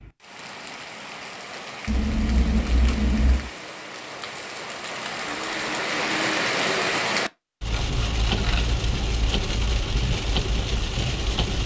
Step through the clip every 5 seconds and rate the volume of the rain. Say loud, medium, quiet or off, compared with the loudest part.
medium, loud, loud.